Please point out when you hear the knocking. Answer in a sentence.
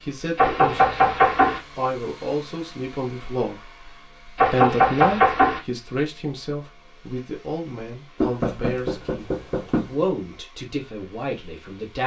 The knocking can be heard from 0.3 to 1.6 s, from 4.3 to 5.6 s and from 8.2 to 9.8 s.